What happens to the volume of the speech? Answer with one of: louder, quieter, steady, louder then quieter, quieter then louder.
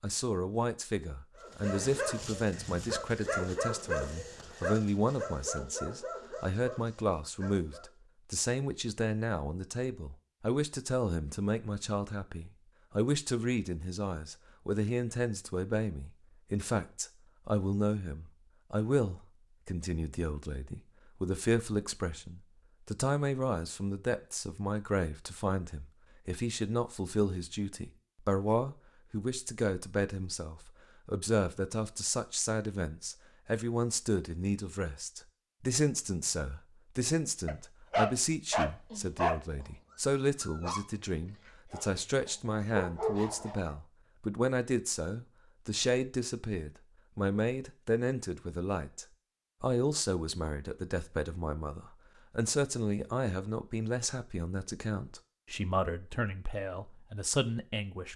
steady.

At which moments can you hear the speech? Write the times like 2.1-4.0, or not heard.
0.0-58.1.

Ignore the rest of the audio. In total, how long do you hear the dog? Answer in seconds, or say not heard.
13 s.